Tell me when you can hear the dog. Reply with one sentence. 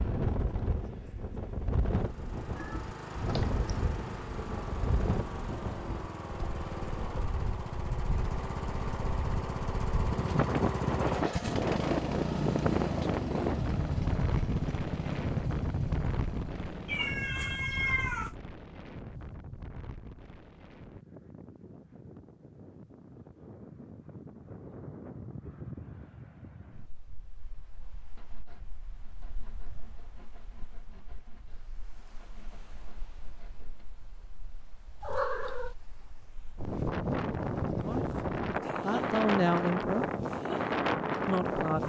The dog can't be heard in this clip.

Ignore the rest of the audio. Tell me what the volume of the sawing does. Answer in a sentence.
The volume of the sawing stays about the same.